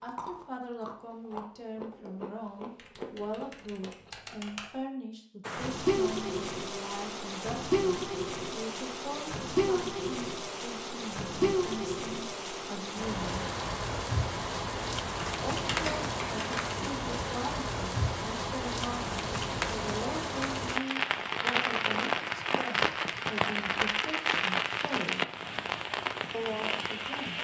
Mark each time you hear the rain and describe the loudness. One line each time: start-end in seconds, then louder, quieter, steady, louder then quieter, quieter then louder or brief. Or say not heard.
5.4-27.3 steady.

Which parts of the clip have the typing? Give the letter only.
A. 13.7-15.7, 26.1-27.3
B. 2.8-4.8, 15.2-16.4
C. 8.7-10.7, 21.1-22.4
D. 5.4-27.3
B.